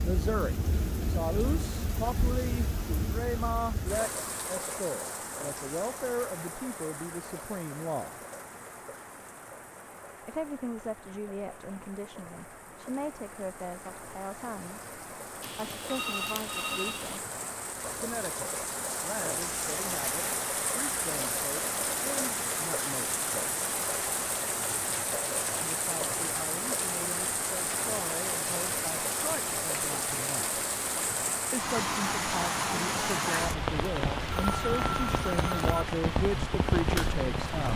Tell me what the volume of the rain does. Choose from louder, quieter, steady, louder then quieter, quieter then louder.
quieter then louder.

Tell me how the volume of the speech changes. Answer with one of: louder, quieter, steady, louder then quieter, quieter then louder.
quieter then louder.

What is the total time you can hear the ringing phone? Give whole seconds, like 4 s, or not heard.
3 s.